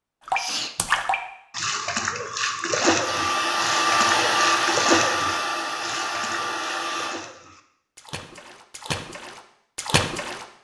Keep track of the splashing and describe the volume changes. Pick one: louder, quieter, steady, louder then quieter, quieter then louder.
quieter then louder.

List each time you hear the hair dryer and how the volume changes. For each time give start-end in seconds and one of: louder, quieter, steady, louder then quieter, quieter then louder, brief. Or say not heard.
3.0-7.2 quieter.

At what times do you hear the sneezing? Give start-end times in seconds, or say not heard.
0.3-0.8.